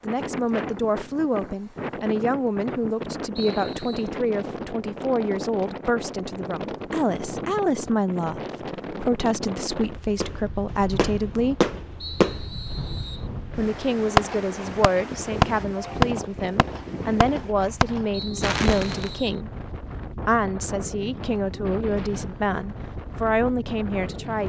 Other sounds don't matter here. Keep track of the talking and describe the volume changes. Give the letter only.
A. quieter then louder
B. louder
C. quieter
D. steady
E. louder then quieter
D.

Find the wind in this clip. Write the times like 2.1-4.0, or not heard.
0.0-24.4.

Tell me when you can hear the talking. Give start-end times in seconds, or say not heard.
0.0-11.6, 13.6-19.5, 20.2-24.4.